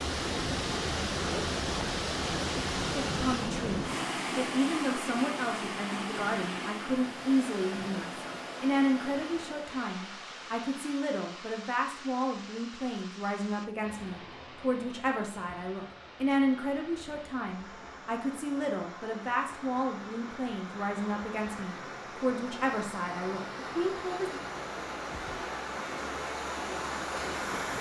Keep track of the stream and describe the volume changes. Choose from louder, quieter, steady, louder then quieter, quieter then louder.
quieter then louder.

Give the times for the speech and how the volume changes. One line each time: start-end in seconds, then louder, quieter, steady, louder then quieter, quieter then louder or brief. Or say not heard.
3.0-24.4 steady.